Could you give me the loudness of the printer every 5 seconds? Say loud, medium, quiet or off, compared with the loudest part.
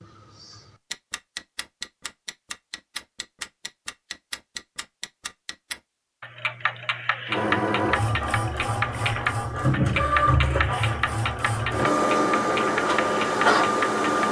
off, loud, loud.